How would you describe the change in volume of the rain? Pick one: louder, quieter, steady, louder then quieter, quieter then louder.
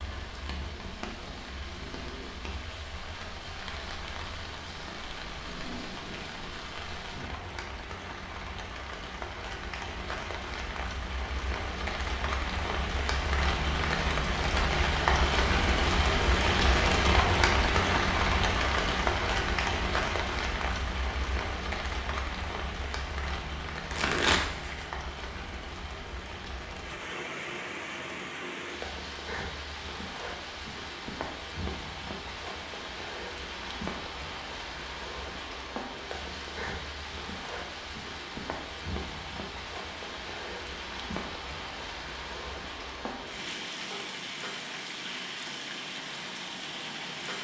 louder then quieter.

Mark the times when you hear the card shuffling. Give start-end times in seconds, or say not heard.
23.9-24.9.